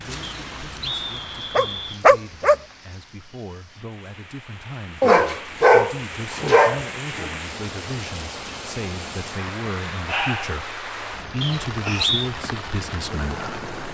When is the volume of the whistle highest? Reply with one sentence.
The volume of the whistle peaks at 12 seconds.